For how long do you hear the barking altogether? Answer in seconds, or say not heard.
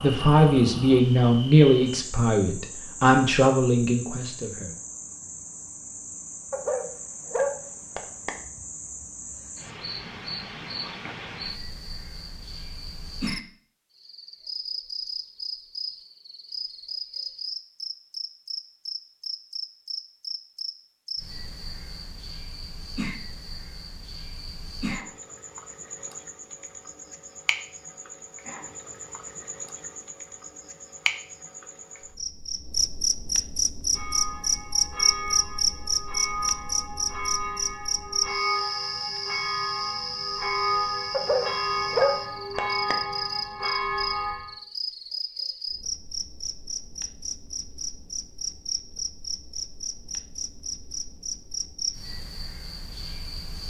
4 s.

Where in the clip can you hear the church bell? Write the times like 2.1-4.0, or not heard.
34.0-44.5.